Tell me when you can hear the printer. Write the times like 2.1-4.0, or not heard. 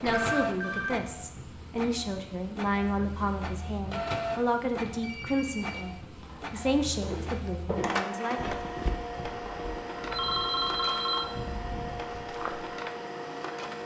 0.0-13.8.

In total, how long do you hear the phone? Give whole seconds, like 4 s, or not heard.
5 s.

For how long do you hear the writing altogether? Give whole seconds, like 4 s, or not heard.
not heard.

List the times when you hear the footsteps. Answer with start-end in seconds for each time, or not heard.
7.0-12.8.